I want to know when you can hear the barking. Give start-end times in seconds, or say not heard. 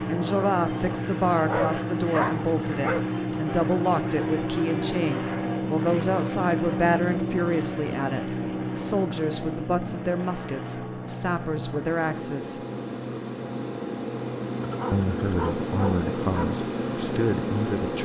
1.4-3.4, 14.6-16.4.